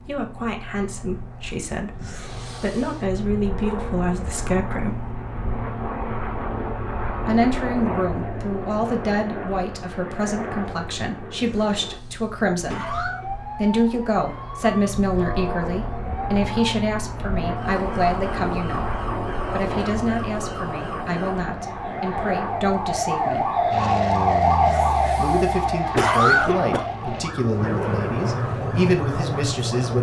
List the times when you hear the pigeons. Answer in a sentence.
The pigeons can't be heard in this clip.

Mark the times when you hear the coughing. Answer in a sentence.
The coughing can be heard from 1.9 to 3.0 s, from 11.3 to 13.2 s and from 24.6 to 26.9 s.